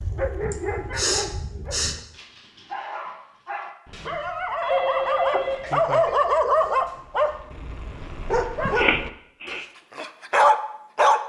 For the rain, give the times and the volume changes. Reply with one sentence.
You can't hear the rain here.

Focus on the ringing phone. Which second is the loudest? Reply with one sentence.
The loudest moment of the ringing phone is at 5 seconds.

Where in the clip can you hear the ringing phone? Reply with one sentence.
The ringing phone can be heard from 4.6 to 6.2 s.